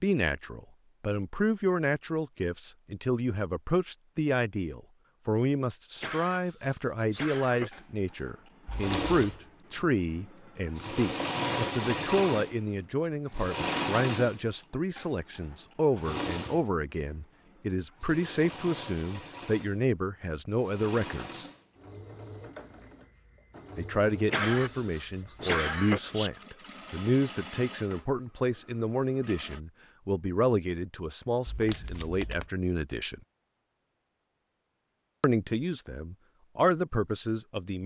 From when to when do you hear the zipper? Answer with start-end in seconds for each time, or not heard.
not heard.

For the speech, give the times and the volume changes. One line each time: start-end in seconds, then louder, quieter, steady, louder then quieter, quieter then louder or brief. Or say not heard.
0.0-21.4 steady
23.8-33.2 steady
35.2-37.8 brief.